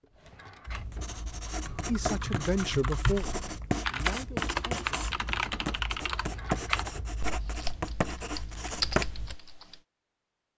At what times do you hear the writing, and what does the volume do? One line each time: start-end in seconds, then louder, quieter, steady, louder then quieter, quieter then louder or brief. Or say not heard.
0.7-9.3 steady.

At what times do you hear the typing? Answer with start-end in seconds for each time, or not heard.
1.6-9.8.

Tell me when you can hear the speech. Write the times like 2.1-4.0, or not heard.
1.9-4.9.